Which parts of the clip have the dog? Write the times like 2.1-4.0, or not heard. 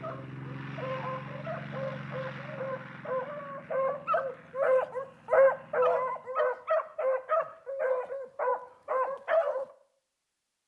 0.0-9.7.